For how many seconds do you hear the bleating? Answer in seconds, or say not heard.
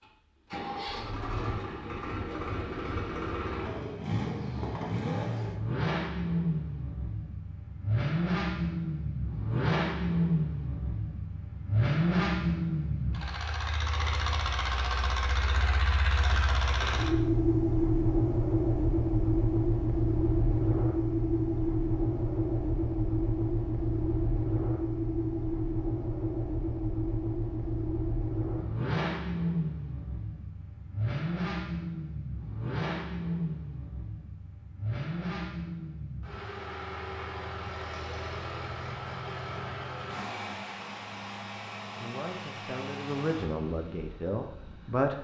not heard.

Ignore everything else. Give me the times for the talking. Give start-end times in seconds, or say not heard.
42.0-45.1.